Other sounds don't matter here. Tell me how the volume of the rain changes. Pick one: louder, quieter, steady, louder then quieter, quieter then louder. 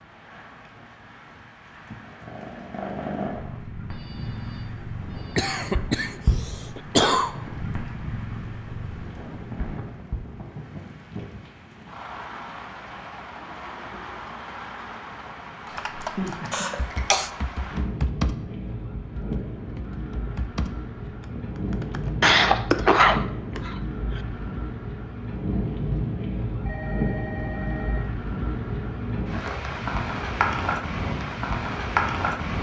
louder.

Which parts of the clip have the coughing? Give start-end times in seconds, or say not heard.
5.3-7.3, 16.5-17.3, 22.2-24.2.